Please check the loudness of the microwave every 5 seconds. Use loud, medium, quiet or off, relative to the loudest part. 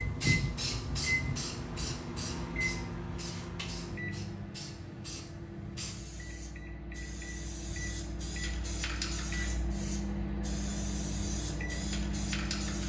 loud, medium, loud.